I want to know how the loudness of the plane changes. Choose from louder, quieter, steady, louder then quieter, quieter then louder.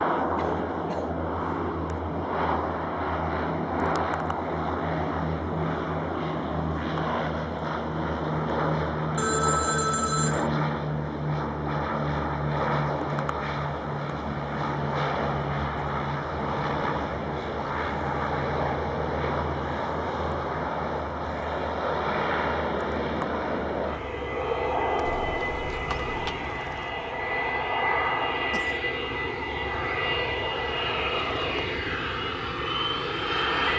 steady.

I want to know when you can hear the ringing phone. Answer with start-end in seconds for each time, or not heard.
9.2-10.4, 25.1-26.4.